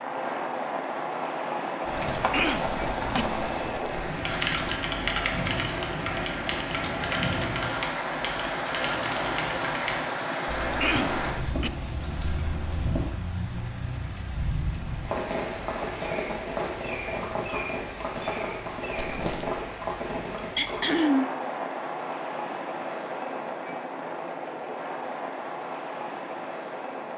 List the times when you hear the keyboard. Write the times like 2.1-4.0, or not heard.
1.9-13.2.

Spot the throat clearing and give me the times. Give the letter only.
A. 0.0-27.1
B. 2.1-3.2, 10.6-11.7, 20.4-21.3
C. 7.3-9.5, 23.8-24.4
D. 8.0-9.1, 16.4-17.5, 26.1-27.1
B.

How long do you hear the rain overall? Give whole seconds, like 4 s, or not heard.
27 s.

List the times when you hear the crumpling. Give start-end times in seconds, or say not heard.
2.5-4.7, 18.9-19.6.